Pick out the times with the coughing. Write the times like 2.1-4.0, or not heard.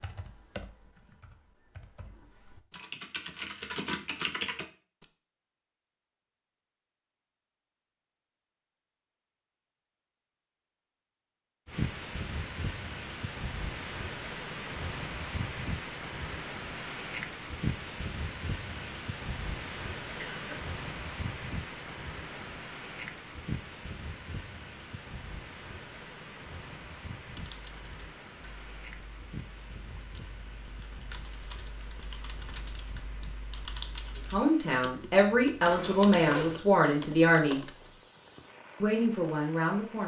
20.1-20.6.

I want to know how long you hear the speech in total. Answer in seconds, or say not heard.
5 s.